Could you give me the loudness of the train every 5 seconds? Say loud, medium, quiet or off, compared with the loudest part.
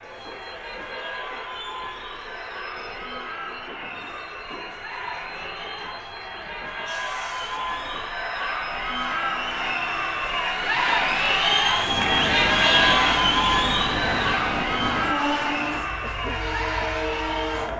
quiet, quiet, loud, loud.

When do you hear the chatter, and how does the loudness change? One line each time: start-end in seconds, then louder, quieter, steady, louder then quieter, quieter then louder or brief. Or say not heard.
0.0-17.7 louder then quieter.